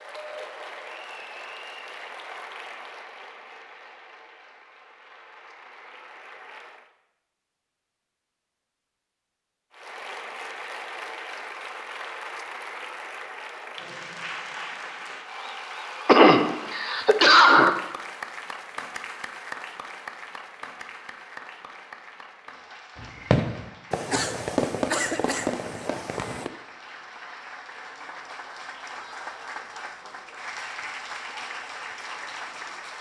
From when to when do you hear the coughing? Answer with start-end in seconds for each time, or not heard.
16.1-17.7.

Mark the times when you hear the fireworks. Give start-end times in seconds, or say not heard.
22.9-26.5.